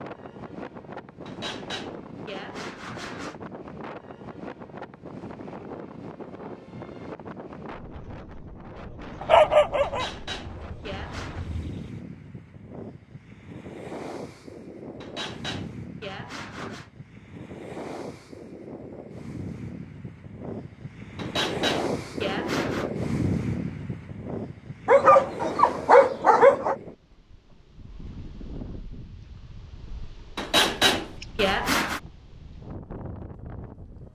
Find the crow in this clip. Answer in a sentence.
You can't hear the crow here.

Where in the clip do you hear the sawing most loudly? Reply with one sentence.
The volume of the sawing peaks at 31 seconds.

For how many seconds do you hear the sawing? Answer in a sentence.
The sawing can be heard for 9 seconds in total.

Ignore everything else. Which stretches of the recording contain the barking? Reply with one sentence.
The barking can be heard from 9.2 to 11.7 s and from 24.9 to 26.8 s.